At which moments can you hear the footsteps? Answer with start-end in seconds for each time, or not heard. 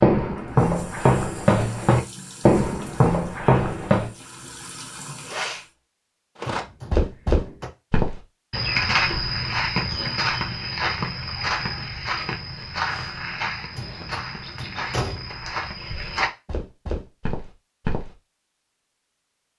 0.0-4.1, 6.4-18.1.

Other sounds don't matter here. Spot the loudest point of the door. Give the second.
15 s.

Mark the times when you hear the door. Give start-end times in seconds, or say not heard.
6.5-7.7, 13.8-15.4.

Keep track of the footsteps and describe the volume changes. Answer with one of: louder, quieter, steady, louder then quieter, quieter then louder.
quieter.